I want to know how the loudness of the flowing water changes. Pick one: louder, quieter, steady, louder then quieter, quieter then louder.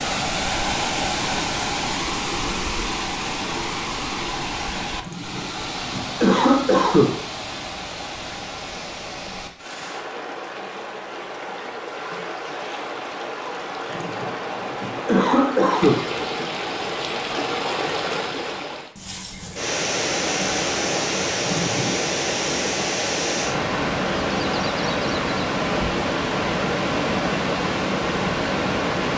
quieter then louder.